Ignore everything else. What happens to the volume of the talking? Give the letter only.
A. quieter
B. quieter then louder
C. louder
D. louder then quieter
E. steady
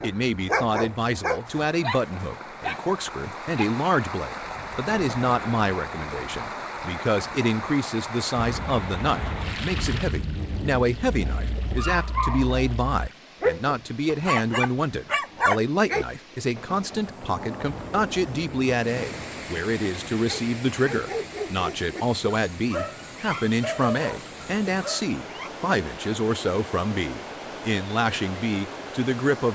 E.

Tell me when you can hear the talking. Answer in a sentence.
You can hear the talking from 0.0 to 29.5 s.